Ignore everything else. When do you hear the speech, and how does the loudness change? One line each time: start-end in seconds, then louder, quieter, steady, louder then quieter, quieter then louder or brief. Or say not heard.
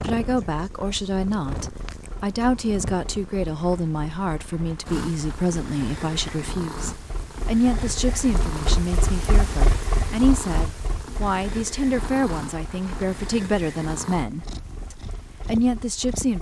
0.0-16.3 steady.